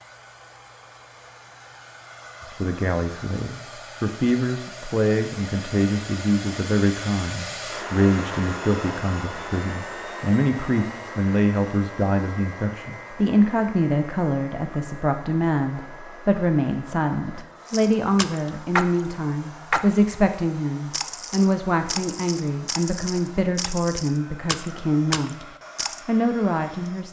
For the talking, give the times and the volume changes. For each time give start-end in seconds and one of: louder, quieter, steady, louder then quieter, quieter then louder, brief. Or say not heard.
2.4-25.4 steady
26.1-27.0 brief.